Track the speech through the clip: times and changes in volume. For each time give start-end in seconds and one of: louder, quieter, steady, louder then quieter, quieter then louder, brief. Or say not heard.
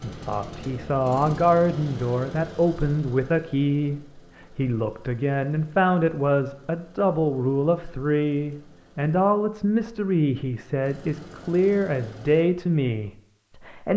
0.0-13.9 steady.